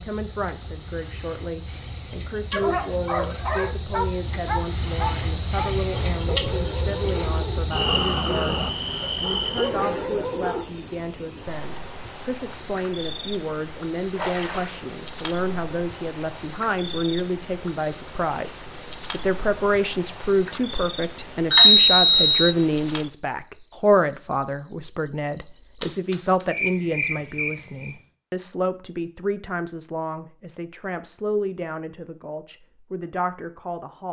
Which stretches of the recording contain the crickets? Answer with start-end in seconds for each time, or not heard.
0.0-28.0.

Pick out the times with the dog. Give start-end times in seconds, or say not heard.
2.5-10.7.